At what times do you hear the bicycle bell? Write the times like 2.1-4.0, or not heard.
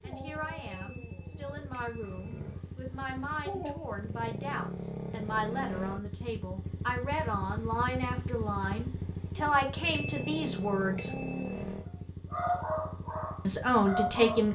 0.7-2.4, 9.9-11.7.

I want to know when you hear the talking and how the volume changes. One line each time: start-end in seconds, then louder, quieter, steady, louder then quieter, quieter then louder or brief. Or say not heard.
0.0-11.2 louder
13.4-14.4 brief.